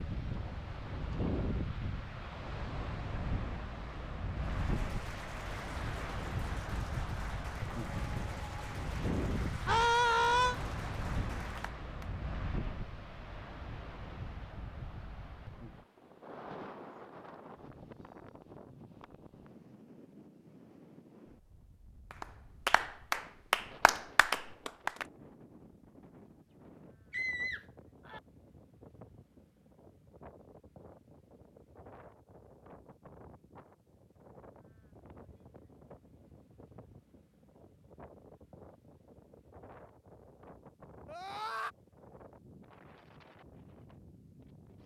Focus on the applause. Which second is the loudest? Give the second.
23 s.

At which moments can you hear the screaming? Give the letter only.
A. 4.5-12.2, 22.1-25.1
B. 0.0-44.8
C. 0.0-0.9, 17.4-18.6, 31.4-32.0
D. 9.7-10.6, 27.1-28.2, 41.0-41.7
D.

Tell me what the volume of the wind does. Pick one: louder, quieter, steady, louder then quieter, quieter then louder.
quieter.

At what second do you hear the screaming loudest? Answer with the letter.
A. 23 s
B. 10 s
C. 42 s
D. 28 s
B.